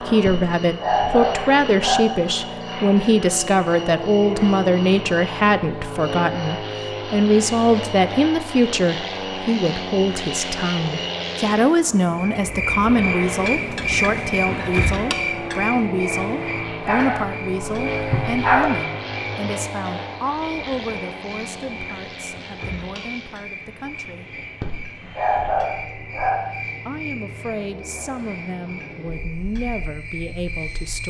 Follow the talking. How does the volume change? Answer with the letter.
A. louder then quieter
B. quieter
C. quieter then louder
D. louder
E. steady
B.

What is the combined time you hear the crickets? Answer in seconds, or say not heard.
31 s.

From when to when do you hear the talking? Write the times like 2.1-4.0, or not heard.
0.1-24.3, 26.9-31.0.